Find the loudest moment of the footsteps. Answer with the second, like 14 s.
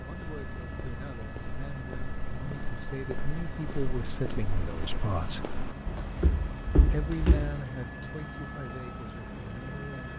7 s.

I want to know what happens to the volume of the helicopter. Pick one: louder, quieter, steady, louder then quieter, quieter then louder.
steady.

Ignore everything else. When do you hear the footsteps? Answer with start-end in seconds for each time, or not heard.
0.0-7.6.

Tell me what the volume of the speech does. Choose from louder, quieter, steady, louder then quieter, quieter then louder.
louder then quieter.